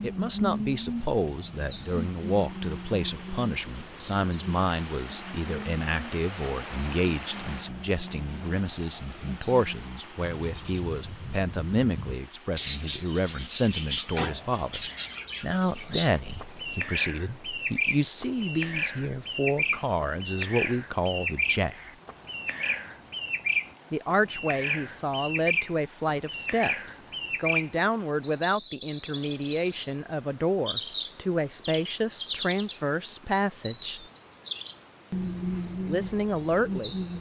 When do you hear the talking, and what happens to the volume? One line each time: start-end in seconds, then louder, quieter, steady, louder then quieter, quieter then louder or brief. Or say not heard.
0.0-21.9 steady
23.9-34.0 steady
35.9-37.0 brief.